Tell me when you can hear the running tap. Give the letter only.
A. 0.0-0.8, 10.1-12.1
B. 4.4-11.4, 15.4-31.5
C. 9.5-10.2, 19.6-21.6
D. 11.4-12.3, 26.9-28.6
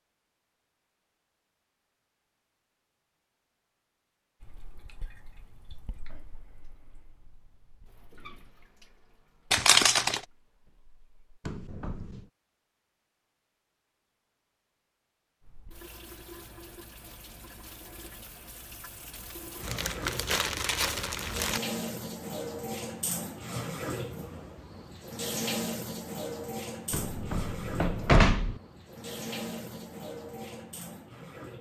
B.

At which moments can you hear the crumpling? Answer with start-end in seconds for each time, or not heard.
9.5-10.2, 19.6-21.6.